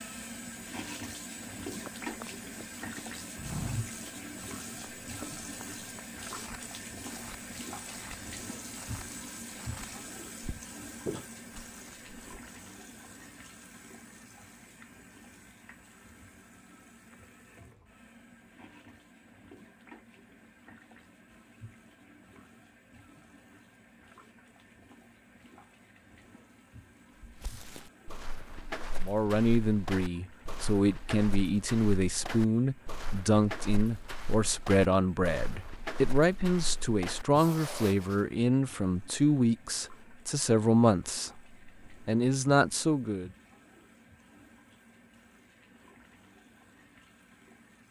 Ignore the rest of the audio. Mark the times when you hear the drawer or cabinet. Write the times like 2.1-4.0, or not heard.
not heard.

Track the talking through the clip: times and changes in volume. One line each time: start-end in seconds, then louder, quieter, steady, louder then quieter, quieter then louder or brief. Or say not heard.
29.0-43.3 steady.